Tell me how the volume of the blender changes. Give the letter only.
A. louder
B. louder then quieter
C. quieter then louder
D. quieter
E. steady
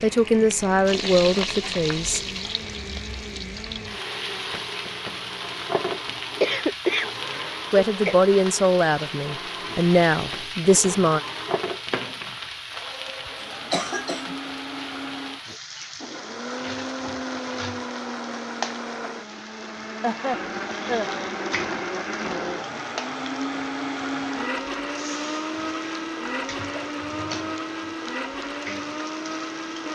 A.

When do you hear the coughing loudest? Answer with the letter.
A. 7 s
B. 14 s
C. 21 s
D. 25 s
A.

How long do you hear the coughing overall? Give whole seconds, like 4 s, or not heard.
4 s.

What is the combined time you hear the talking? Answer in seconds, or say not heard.
6 s.